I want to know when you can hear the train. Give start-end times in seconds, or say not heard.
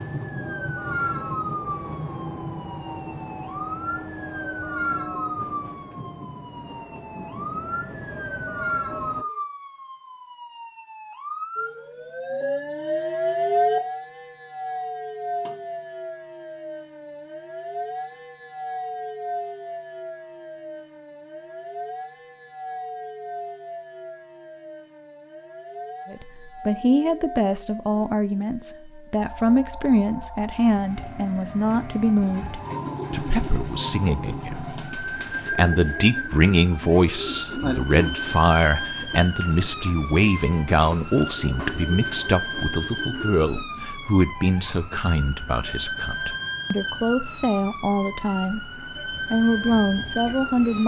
0.0-9.2, 49.1-50.8.